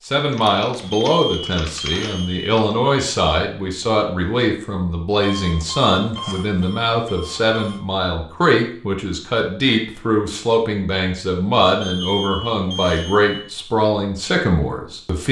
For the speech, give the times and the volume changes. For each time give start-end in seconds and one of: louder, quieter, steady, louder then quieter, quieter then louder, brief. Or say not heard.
0.1-15.2 steady.